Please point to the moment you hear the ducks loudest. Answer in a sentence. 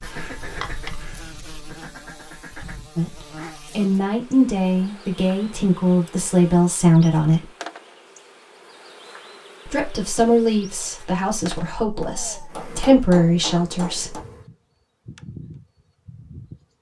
The volume of the ducks peaks at 1 second.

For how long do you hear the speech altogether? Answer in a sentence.
The speech can be heard for 9 seconds in total.